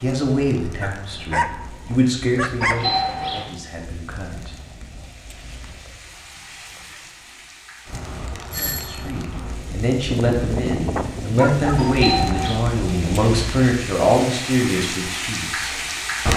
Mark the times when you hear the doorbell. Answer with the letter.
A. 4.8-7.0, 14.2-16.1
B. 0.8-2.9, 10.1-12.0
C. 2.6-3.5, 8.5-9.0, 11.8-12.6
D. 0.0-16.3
C.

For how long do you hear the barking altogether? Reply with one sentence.
You can hear the barking for 4 seconds altogether.